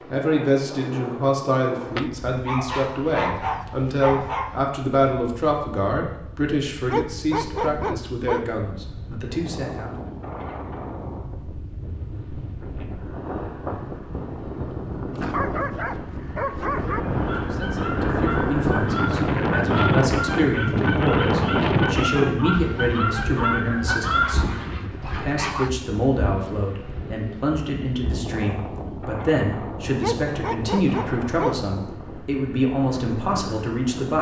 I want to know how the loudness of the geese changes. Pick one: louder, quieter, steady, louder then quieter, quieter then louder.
louder.